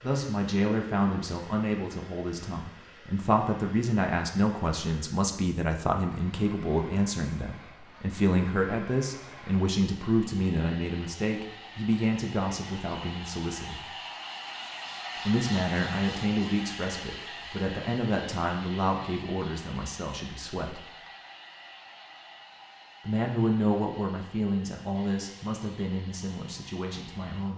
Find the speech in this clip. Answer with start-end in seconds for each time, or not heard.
0.0-13.9, 15.2-20.9, 23.1-27.5.